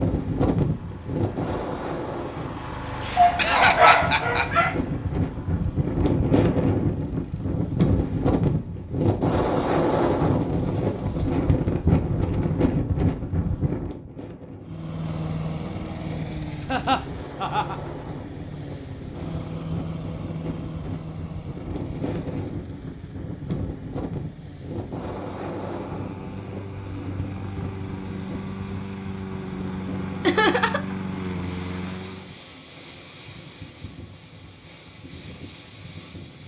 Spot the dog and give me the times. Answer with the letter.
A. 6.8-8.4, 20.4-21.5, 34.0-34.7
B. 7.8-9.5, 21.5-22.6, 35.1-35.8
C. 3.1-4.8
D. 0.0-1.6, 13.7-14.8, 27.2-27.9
C.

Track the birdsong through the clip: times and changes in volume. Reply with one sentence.
You can't hear the birdsong here.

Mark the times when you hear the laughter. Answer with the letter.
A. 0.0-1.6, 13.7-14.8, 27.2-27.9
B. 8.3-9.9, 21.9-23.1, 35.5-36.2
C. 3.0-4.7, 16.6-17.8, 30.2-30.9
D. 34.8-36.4
C.